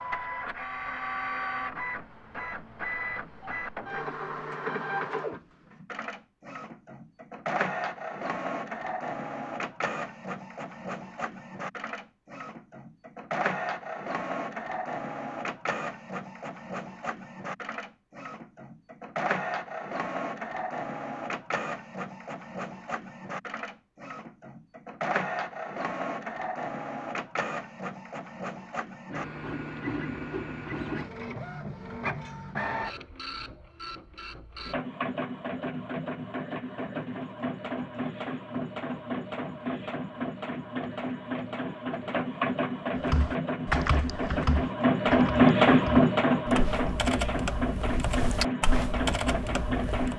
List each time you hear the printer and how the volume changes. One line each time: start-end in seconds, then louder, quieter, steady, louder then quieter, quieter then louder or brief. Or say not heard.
0.0-50.1 louder.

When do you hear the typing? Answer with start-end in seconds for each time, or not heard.
43.0-50.1.